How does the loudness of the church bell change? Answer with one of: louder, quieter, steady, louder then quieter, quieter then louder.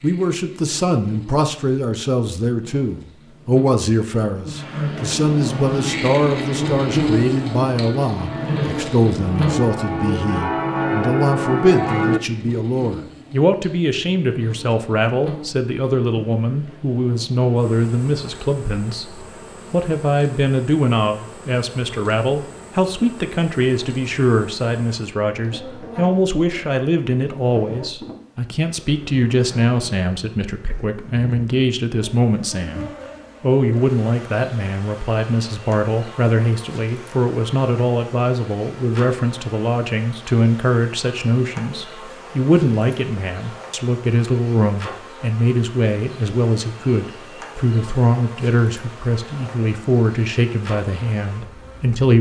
louder.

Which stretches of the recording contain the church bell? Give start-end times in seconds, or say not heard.
5.5-12.2.